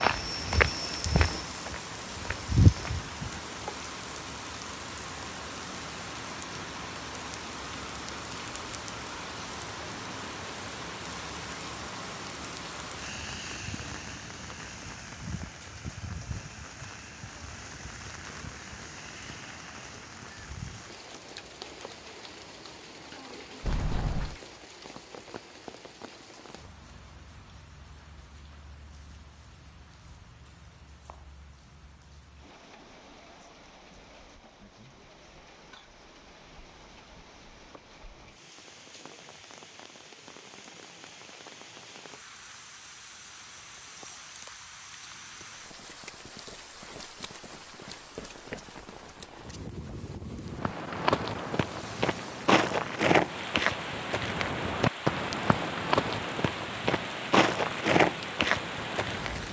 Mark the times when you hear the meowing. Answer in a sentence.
You can't hear the meowing here.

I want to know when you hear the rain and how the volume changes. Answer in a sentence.
You can hear the rain from 0.0 to 59.4 s, getting quieter then louder.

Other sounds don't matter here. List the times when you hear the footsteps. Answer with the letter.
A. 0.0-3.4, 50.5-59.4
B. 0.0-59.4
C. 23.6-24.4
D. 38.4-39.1
A.